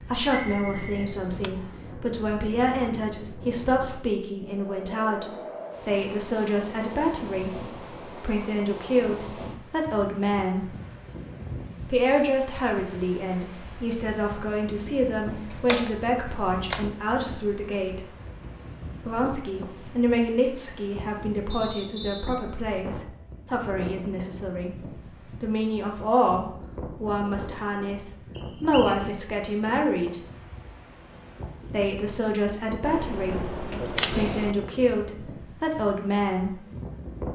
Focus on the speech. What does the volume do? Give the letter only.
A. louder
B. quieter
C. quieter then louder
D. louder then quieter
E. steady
E.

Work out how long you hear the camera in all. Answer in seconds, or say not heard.
5 s.